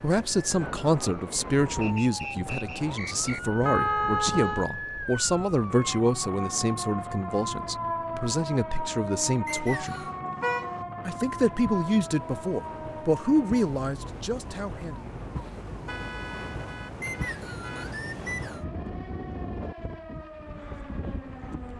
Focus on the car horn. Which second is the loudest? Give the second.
4 s.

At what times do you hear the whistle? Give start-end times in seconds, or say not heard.
1.8-3.4, 9.4-10.1, 17.0-18.6.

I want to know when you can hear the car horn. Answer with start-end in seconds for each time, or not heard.
3.6-4.7, 9.5-10.8, 15.8-17.9.